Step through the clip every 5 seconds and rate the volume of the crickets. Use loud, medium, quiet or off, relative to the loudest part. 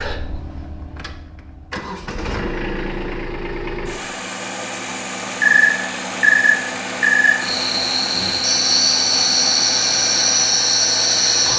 off, loud, loud.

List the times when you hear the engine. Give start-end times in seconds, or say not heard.
0.0-11.5.